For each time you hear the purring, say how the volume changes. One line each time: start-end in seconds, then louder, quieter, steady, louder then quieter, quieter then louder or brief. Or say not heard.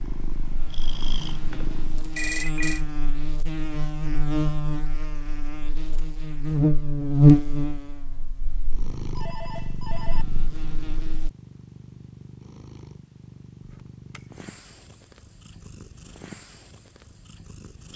0.0-2.2 brief
8.4-17.9 quieter.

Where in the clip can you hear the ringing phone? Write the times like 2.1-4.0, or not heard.
2.1-2.8, 9.1-10.2, 13.6-14.2.